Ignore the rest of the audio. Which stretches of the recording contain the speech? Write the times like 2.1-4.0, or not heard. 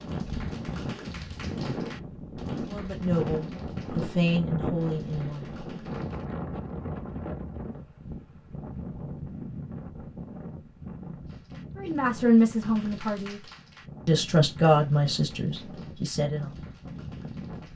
2.7-5.5, 11.8-13.4, 14.1-16.5.